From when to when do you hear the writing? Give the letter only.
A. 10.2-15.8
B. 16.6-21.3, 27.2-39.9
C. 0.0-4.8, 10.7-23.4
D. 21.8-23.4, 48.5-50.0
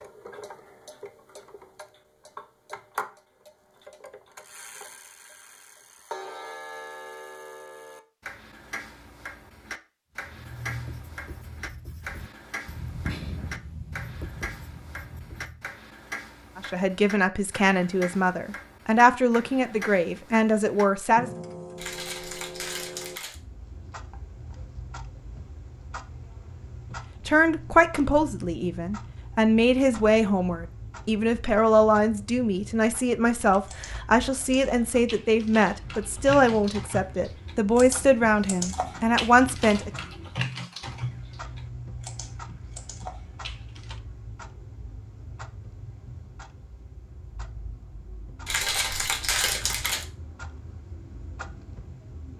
A.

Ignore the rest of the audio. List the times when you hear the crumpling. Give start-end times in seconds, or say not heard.
21.8-23.4, 48.5-50.0.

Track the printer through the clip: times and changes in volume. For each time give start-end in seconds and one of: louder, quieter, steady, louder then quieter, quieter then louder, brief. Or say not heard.
not heard.